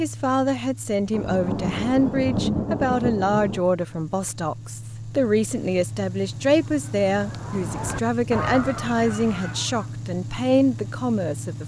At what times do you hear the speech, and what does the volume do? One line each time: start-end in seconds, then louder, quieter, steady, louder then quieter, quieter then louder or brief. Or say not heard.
0.0-11.6 steady.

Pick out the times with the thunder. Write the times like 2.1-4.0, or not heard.
1.1-3.6.